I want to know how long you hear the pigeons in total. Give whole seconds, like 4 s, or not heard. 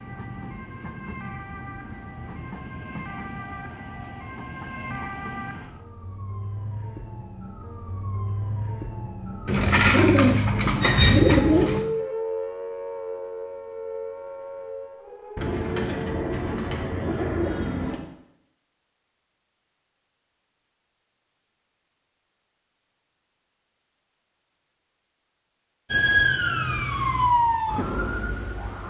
5 s.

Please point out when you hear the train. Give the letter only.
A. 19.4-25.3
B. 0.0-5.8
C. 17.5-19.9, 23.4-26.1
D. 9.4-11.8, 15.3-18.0
B.